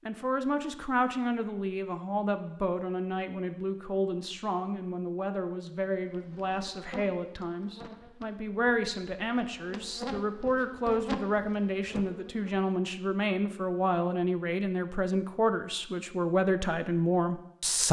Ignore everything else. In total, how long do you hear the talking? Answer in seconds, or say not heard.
18 s.